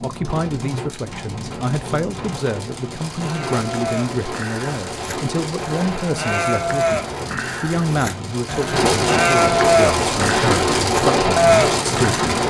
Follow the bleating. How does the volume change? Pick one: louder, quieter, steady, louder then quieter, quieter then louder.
louder.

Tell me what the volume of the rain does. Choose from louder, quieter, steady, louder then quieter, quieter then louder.
louder.